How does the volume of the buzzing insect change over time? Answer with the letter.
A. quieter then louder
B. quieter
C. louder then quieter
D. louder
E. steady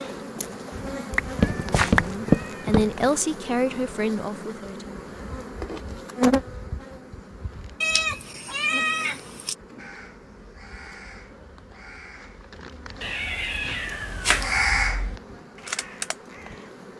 C.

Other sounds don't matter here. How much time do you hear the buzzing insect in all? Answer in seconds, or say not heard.
17 s.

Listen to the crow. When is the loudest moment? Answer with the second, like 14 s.
15 s.